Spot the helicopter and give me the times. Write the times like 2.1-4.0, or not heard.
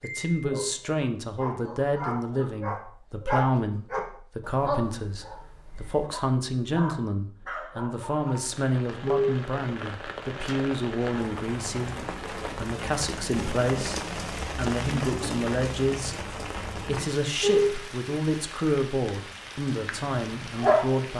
not heard.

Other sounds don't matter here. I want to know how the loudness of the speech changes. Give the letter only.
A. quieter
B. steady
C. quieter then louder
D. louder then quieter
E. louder
B.